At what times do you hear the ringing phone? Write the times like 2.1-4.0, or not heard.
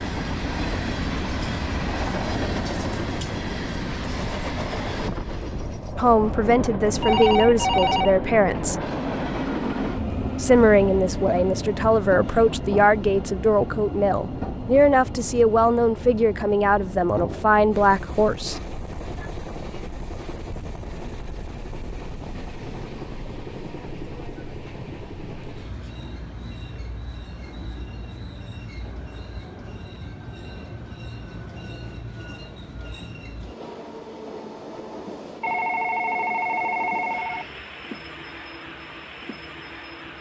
7.0-8.9, 35.4-37.5.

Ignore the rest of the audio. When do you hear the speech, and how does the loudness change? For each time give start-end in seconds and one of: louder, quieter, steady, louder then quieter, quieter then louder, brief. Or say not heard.
6.0-8.8 brief
10.4-18.6 steady.